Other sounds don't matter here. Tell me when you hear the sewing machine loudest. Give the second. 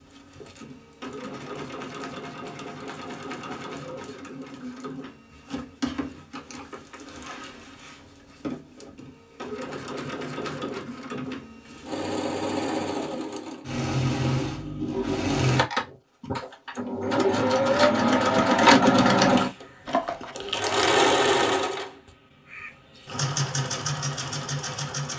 19 s.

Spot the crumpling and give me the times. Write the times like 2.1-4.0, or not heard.
19.9-20.9.